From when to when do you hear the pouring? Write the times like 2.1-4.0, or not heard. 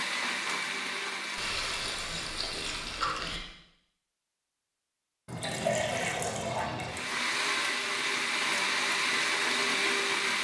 1.4-3.4, 5.2-7.0.